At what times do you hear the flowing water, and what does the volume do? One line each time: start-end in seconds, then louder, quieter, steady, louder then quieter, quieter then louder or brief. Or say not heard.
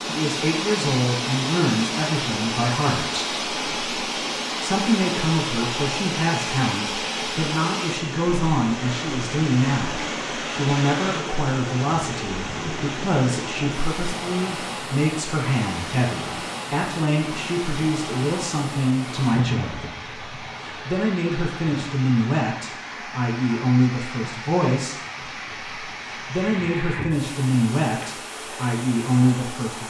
0.0-29.8 quieter.